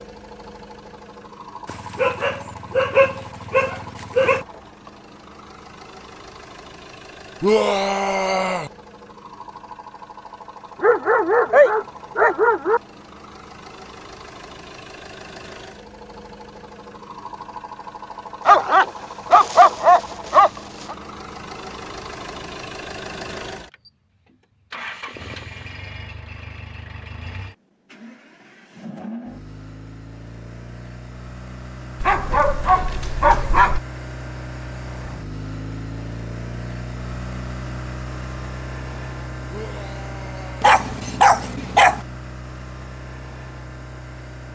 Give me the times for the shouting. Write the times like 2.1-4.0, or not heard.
7.4-8.7, 39.5-40.8.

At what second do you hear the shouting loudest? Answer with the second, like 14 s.
8 s.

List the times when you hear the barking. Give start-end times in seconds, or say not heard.
1.6-4.5, 10.8-12.8, 18.4-20.9, 32.0-33.8, 40.6-42.0.